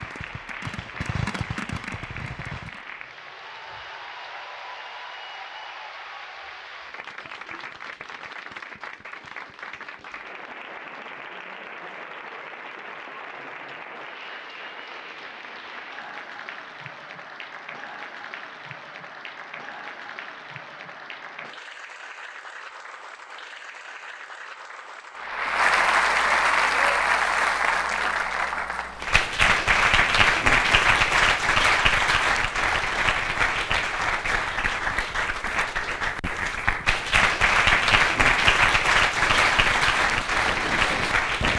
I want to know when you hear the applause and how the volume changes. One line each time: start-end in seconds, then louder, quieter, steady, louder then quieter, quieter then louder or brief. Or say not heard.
0.0-41.5 louder.